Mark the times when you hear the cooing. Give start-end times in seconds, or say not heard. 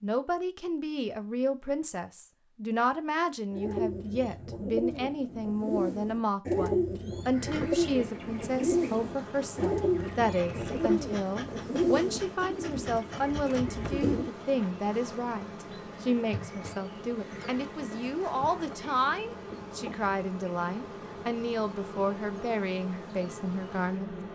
3.5-14.3.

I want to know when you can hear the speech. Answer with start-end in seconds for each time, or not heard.
0.0-24.3.